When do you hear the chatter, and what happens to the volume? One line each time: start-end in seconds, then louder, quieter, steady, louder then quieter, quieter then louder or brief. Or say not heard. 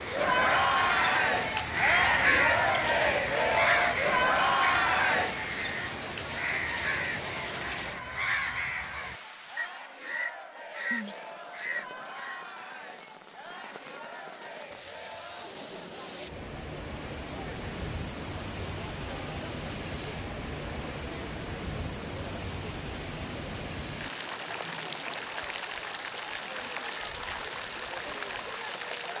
0.0-29.1 quieter.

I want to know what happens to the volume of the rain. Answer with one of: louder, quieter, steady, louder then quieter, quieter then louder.
quieter then louder.